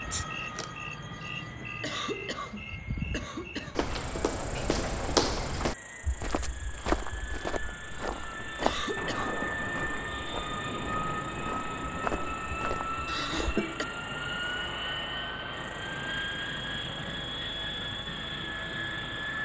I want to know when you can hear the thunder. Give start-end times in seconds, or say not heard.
8.9-12.4.